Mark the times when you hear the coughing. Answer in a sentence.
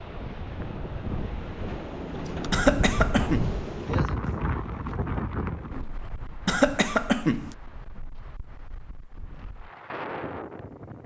You can hear the coughing from 2.5 to 3.5 s and from 6.5 to 7.5 s.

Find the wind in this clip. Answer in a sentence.
You can hear the wind from 0.0 to 11.0 s.